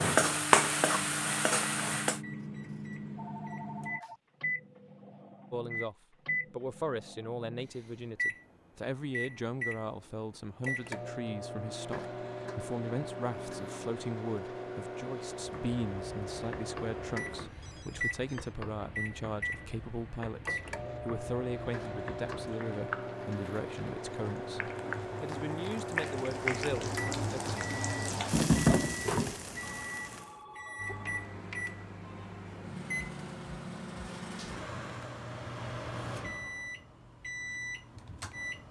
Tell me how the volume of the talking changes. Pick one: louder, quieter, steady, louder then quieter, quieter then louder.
steady.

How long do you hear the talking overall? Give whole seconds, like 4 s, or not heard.
22 s.